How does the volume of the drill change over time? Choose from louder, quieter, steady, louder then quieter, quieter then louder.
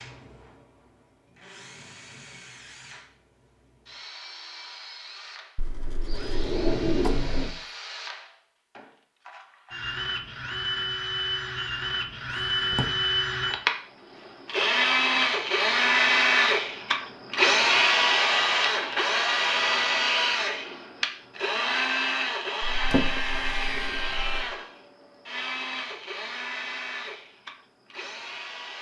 louder then quieter.